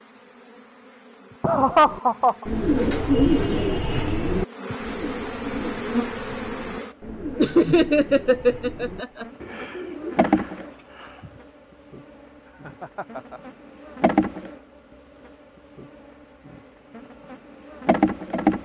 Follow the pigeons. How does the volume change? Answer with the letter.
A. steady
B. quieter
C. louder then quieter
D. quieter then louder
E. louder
B.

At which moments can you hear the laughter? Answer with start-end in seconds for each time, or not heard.
1.4-2.5, 7.3-9.2, 12.6-13.4.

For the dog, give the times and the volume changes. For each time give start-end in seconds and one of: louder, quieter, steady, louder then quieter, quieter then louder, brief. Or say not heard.
not heard.